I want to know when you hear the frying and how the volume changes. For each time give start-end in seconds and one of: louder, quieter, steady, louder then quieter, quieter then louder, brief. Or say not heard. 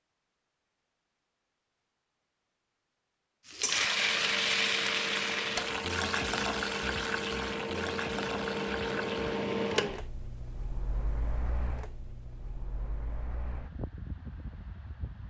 3.5-10.1 quieter.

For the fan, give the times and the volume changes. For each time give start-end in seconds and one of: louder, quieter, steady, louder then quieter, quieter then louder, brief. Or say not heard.
3.7-15.2 louder then quieter.